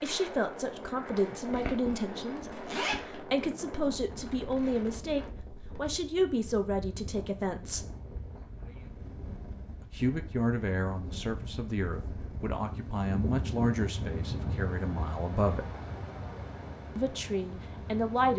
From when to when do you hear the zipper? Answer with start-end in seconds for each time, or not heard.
1.1-3.2.